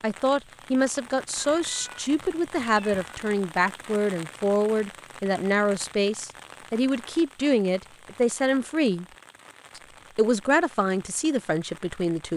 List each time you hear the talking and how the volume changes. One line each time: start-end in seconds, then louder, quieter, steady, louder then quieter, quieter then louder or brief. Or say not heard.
0.0-9.1 steady
9.8-12.3 brief.